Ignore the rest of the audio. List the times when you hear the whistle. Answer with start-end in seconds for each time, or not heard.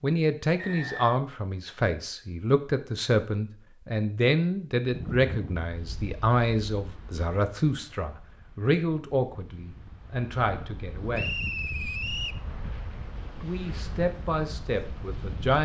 0.6-1.2, 11.1-12.4.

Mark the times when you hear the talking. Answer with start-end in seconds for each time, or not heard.
0.0-11.3, 13.4-15.6.